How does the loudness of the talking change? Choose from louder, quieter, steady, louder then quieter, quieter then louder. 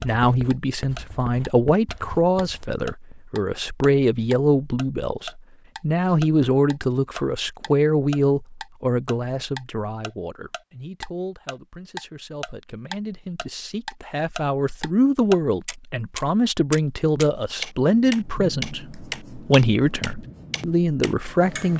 quieter then louder.